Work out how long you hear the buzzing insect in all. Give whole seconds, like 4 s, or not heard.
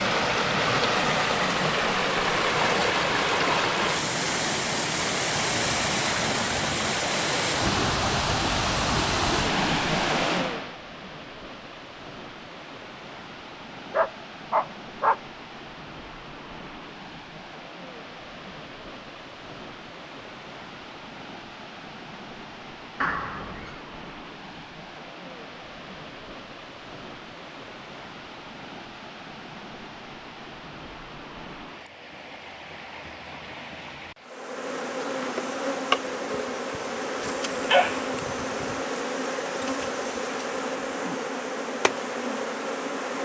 9 s.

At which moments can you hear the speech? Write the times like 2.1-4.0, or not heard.
not heard.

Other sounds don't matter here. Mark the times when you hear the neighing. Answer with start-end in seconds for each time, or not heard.
23.0-23.8.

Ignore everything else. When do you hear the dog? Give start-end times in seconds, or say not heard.
13.9-15.2, 37.2-38.1.